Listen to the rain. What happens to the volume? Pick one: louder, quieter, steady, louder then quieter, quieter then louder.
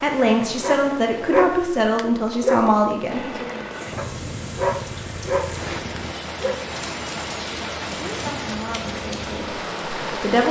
louder.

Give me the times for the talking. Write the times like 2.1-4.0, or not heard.
0.0-3.5, 8.0-10.4.